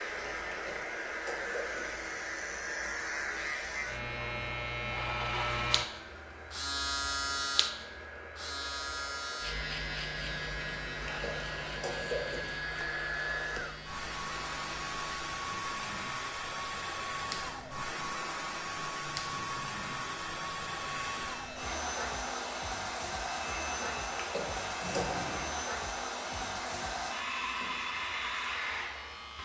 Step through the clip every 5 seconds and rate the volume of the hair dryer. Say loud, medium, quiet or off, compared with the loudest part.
medium, medium, loud, loud, loud, loud.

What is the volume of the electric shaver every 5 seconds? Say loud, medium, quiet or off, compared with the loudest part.
loud, loud, medium, medium, medium, medium.